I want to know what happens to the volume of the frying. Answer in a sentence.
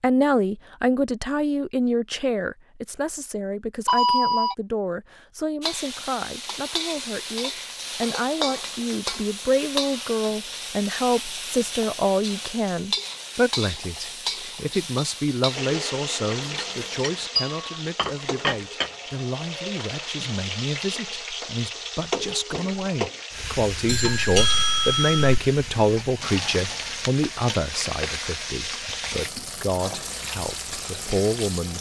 The volume of the frying stays about the same.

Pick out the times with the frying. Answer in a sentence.
You can hear the frying from 5.6 to 31.7 s.